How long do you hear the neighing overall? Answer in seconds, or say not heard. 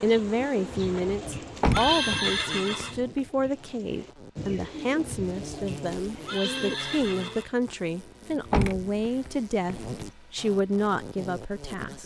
3 s.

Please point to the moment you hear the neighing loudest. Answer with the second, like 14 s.
2 s.